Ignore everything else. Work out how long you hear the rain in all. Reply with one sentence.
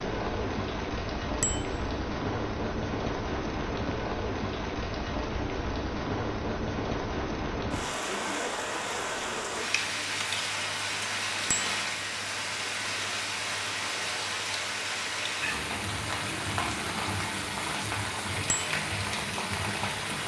You can hear the rain for 20 seconds altogether.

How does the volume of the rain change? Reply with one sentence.
The loudness of the rain stays about the same.